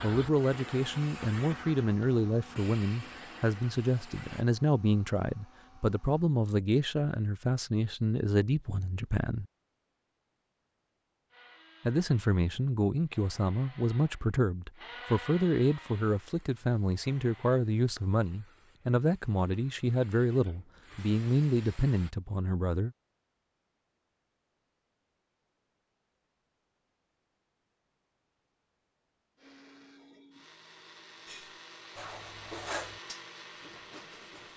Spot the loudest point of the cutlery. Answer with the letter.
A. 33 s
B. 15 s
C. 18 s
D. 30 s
A.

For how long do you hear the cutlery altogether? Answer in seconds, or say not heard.
3 s.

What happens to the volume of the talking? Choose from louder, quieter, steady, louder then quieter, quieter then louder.
steady.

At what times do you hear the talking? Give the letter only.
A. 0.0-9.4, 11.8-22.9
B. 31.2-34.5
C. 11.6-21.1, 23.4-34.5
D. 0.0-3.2
A.